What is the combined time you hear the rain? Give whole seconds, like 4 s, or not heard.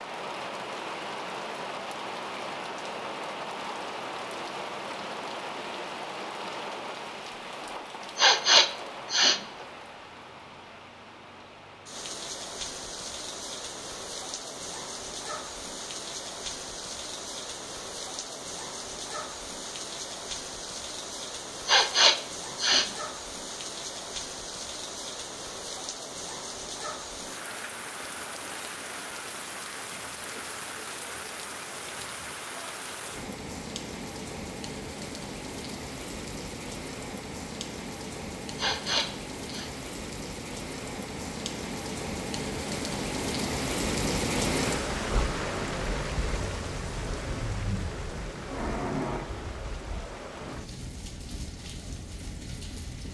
53 s.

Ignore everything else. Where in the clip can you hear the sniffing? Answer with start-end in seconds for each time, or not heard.
8.2-9.4, 21.6-22.9, 38.5-39.7.